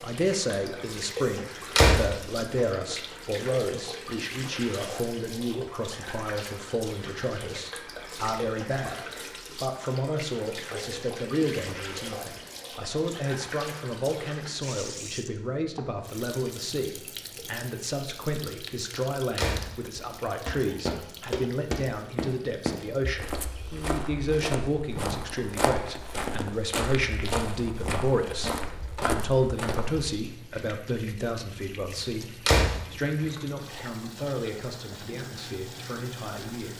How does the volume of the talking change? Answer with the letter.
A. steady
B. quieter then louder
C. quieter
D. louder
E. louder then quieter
A.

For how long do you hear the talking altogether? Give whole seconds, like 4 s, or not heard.
37 s.